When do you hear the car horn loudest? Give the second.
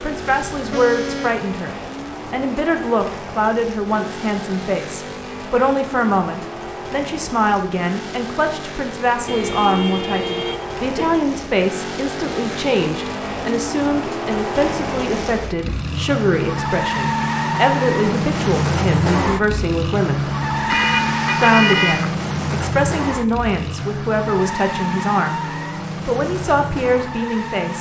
22 s.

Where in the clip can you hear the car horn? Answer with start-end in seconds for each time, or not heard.
0.3-1.4, 9.2-11.2, 20.6-22.1.